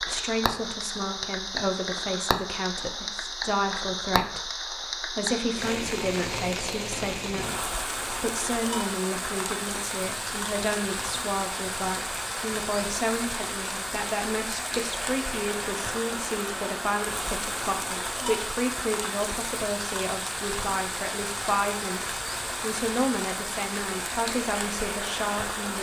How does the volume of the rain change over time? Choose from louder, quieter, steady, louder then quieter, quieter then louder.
steady.